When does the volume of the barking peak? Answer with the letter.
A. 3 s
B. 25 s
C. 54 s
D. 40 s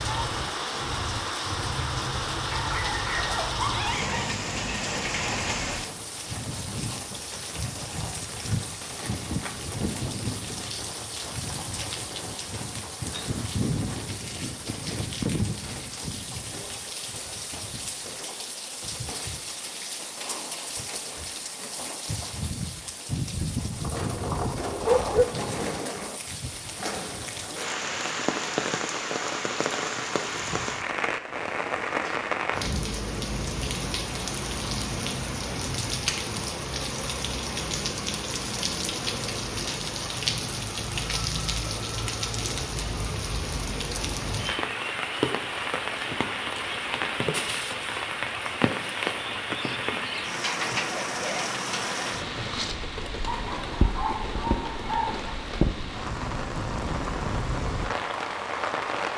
B.